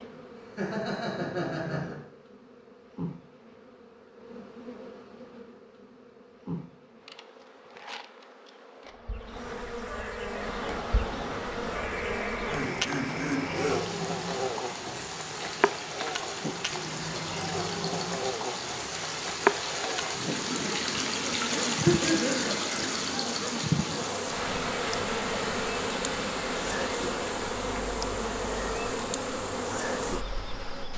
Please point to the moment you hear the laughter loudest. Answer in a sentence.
The volume of the laughter peaks at 22 seconds.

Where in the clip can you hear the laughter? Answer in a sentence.
You can hear the laughter from 0.1 to 2.0 s, from 11.9 to 13.8 s and from 21.5 to 23.2 s.